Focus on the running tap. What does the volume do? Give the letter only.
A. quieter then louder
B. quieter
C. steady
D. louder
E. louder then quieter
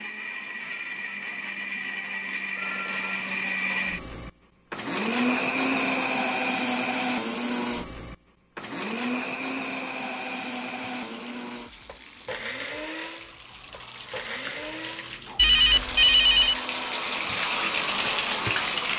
D.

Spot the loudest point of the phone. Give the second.
16 s.